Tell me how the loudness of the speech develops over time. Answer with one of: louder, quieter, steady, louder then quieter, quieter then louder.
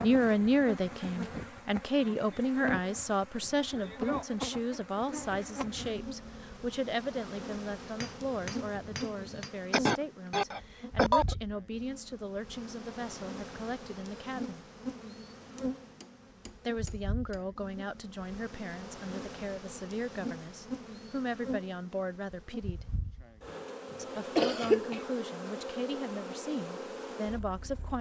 quieter.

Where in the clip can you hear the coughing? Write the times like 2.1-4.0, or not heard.
9.7-11.3, 23.9-25.0.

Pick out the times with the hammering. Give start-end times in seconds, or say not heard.
8.0-9.6, 15.6-17.4.